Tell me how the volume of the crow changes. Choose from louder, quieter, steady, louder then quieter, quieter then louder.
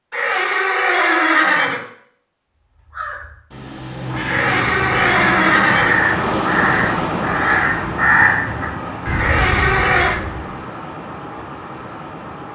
louder then quieter.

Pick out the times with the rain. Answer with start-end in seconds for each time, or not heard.
4.0-12.4.